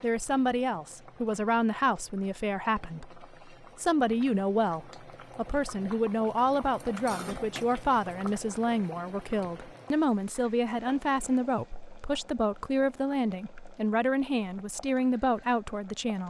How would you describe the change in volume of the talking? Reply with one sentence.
The volume of the talking stays about the same.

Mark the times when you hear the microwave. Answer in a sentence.
The microwave can't be heard in this clip.